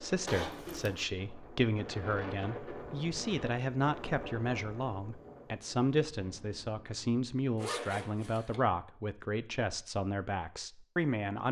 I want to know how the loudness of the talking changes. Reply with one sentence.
The loudness of the talking stays about the same.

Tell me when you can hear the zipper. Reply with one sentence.
You can hear the zipper from 0.2 to 1.1 s and from 7.5 to 8.6 s.